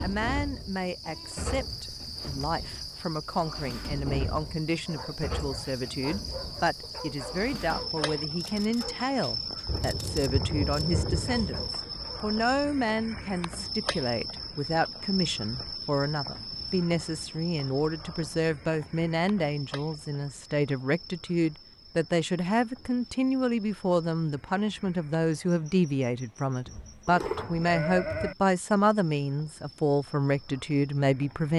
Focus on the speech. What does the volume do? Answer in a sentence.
The loudness of the speech goes up.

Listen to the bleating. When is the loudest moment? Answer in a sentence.
The loudest moment of the bleating is at 28 seconds.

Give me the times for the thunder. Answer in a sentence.
You can hear the thunder from 9.7 to 11.7 s.